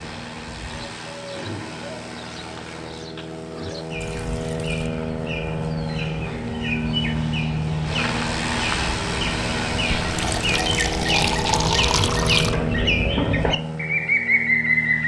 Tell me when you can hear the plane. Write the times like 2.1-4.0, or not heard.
0.0-15.0.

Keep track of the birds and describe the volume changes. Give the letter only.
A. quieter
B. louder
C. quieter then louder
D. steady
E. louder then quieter
B.